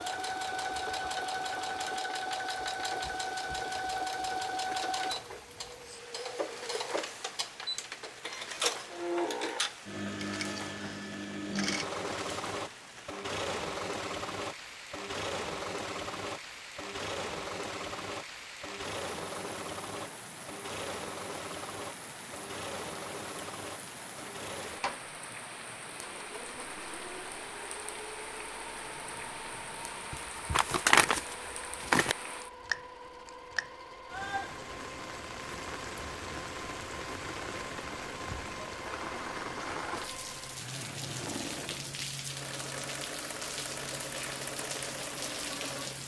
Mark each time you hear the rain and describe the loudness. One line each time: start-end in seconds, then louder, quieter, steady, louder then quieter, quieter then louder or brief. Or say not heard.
0.0-46.0 louder.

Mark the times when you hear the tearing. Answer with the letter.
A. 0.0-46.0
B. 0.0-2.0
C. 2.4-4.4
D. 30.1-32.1
D.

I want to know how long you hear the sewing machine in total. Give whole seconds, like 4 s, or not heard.
46 s.